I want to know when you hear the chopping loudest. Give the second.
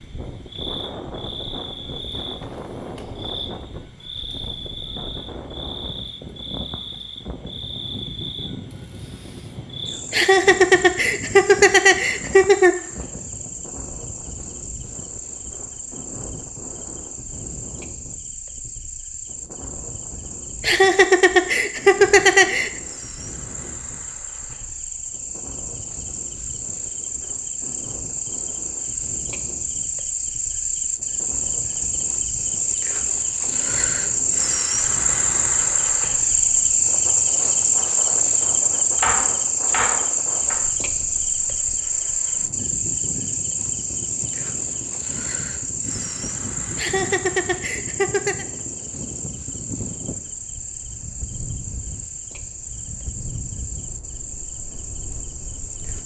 39 s.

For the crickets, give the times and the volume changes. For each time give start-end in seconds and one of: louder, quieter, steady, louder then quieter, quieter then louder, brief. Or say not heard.
0.0-56.0 louder then quieter.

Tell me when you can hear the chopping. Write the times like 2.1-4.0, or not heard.
39.0-40.6.